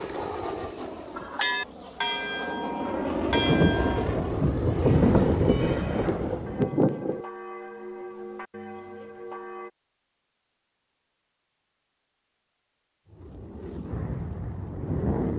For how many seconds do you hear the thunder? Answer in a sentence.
The thunder can be heard for 4 seconds in total.